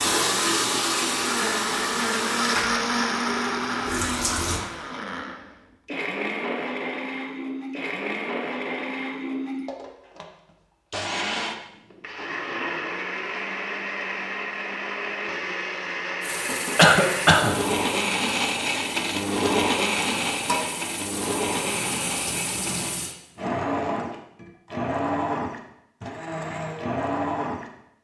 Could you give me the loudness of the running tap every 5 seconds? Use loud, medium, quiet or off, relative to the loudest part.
loud, off, off, medium, medium, off.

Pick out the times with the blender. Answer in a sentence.
You can hear the blender from 0.0 to 28.0 s.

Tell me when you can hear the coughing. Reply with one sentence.
You can hear the coughing from 16.8 to 17.6 s.